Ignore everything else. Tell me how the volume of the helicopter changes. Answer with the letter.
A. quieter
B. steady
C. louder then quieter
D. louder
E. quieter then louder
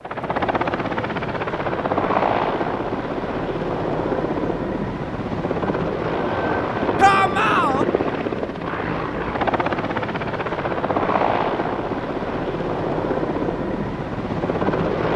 B.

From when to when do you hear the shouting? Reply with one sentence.
You can hear the shouting from 7.0 to 7.8 s.